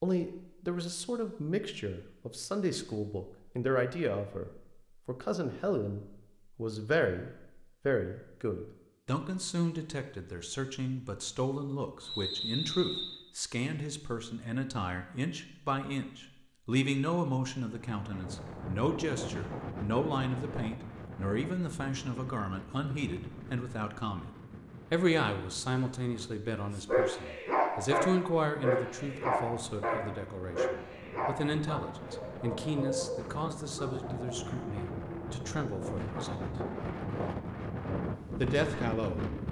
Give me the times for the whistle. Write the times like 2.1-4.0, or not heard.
12.1-13.2.